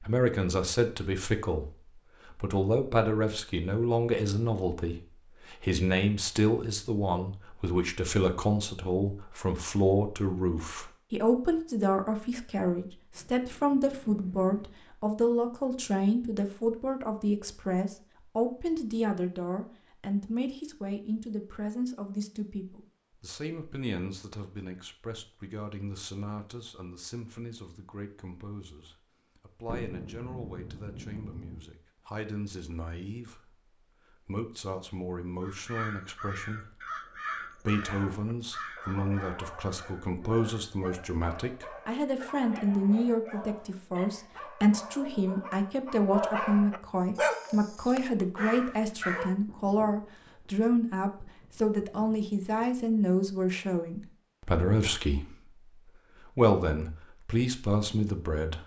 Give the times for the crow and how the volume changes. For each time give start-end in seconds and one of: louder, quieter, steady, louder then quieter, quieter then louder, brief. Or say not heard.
35.4-40.7 quieter.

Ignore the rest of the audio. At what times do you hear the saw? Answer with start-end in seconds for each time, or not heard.
not heard.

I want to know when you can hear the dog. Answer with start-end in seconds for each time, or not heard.
37.8-49.4.